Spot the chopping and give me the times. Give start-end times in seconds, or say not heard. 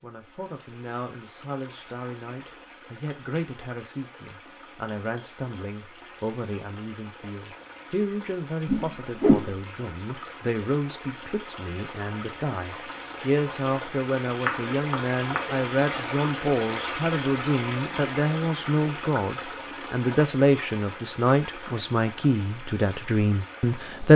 14.4-16.1.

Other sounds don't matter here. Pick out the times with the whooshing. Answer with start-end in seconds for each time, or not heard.
8.7-9.6.